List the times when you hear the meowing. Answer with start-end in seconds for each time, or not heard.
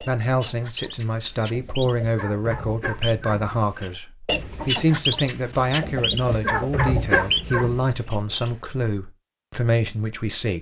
not heard.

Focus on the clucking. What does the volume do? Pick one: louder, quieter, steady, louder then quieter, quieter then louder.
louder.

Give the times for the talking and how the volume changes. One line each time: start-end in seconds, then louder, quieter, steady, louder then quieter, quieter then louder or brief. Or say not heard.
0.0-10.5 steady.